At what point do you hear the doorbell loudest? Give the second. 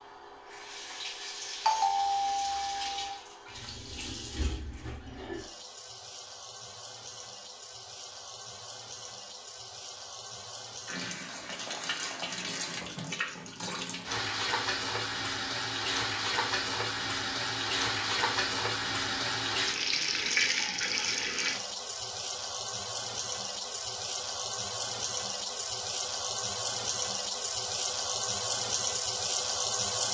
2 s.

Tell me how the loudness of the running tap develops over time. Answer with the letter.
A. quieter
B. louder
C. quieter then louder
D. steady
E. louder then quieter
B.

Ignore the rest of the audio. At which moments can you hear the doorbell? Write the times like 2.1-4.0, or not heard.
1.6-3.1.